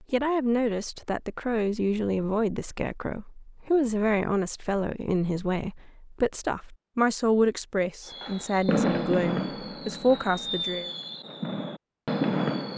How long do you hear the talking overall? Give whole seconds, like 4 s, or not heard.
11 s.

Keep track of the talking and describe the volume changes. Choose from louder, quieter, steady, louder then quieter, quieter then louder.
steady.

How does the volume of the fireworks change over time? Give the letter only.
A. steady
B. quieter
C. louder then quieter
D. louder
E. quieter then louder
E.